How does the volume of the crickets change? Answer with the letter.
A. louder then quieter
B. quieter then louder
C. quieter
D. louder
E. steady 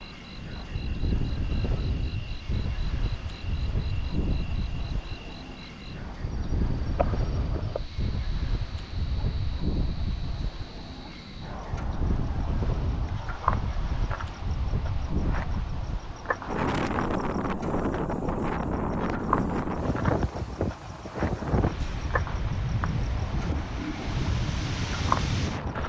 D.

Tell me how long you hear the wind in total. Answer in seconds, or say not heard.
26 s.